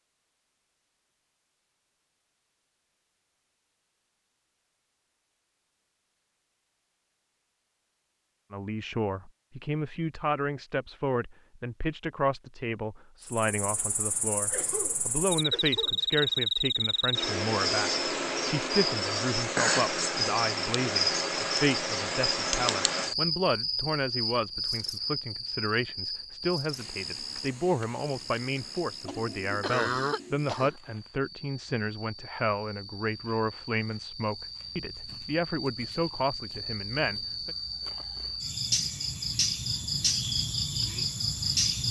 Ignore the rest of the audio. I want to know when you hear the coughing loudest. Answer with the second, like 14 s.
30 s.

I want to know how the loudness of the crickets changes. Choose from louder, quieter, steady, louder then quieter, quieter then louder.
quieter then louder.